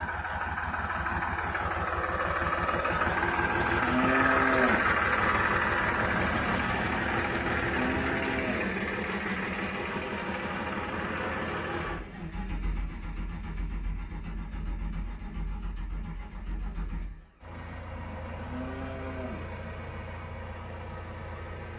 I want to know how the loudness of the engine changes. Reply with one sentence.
The loudness of the engine goes down.